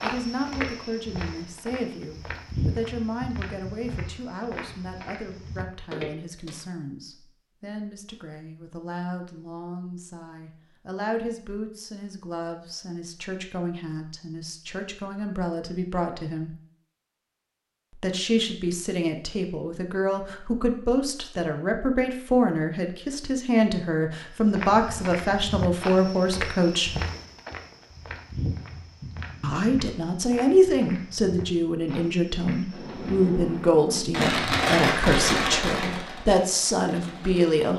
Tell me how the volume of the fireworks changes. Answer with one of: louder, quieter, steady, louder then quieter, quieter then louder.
louder then quieter.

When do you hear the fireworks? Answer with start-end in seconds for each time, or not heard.
32.7-37.6.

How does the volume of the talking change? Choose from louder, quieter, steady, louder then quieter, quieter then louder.
louder.